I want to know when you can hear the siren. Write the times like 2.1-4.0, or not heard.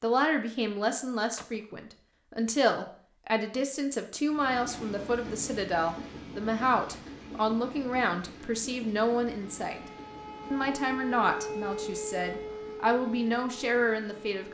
9.3-14.4.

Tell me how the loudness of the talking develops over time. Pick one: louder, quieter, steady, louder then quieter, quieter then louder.
steady.